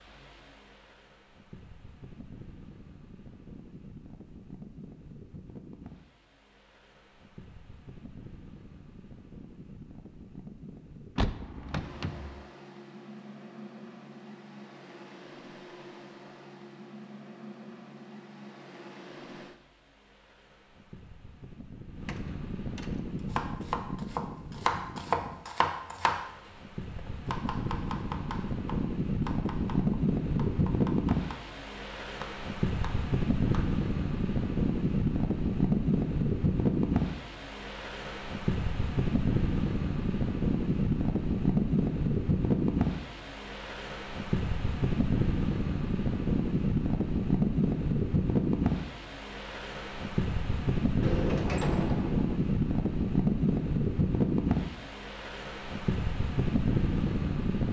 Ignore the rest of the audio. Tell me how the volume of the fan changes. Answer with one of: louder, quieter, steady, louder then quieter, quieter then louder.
louder.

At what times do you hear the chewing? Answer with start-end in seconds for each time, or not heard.
not heard.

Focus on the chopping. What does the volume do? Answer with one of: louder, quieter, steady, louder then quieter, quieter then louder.
quieter.